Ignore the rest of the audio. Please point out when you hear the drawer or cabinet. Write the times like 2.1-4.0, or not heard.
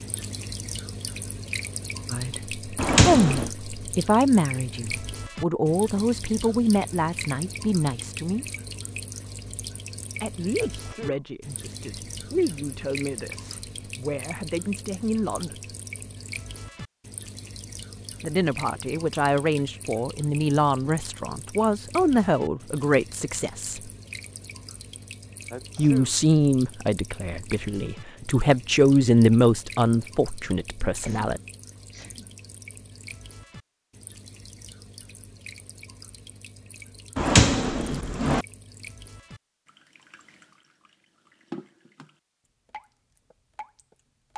2.8-3.5, 37.1-38.5.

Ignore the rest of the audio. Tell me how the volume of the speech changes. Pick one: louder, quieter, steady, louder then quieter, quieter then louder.
quieter then louder.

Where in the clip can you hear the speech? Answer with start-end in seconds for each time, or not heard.
2.1-8.4, 10.2-15.6, 18.2-23.8, 25.8-31.4.